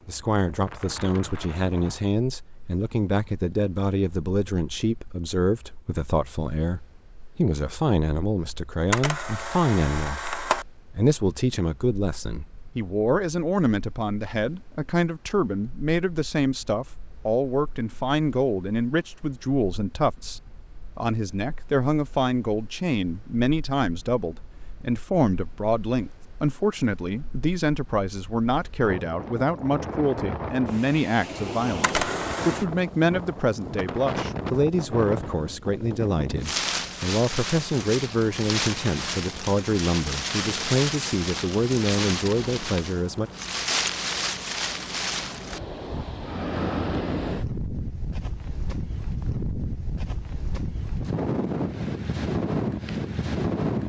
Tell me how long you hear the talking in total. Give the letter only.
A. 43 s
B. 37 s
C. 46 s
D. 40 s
A.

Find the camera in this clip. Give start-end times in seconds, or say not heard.
8.9-10.7, 31.8-32.6.